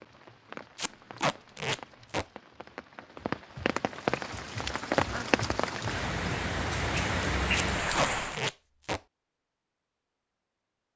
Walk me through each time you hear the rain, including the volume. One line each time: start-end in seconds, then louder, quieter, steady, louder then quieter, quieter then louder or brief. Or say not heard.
0.0-8.4 louder.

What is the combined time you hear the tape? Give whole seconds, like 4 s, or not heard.
3 s.